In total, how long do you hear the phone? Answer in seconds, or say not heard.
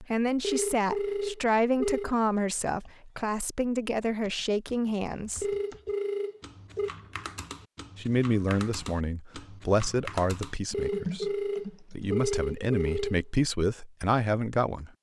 6 s.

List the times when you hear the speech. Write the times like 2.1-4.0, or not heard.
0.0-5.5, 8.0-14.9.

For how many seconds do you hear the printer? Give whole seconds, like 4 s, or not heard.
not heard.